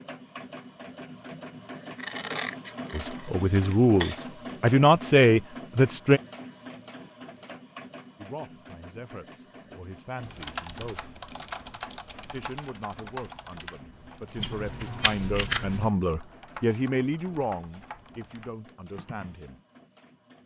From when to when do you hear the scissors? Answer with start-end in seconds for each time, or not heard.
1.9-4.2, 14.3-15.9.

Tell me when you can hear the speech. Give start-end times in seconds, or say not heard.
2.9-6.2, 8.2-11.1, 12.3-19.6.